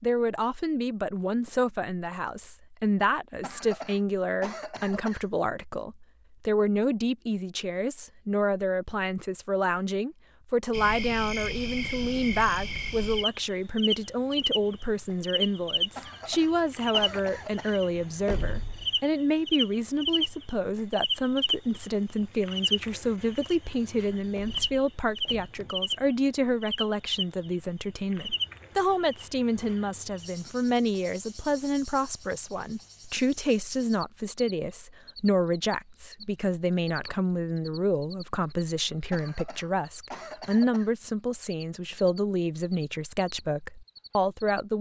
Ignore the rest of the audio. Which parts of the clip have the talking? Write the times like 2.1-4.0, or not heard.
0.0-44.7.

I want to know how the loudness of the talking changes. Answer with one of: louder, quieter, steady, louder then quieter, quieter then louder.
steady.